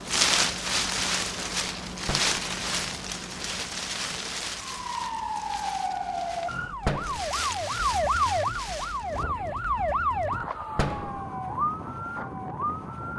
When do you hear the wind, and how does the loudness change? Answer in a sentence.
You can hear the wind from 0.0 to 13.1 s, getting quieter.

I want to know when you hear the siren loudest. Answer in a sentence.
The volume of the siren peaks at 8 seconds.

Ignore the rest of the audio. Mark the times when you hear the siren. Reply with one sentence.
You can hear the siren from 4.7 to 13.1 s.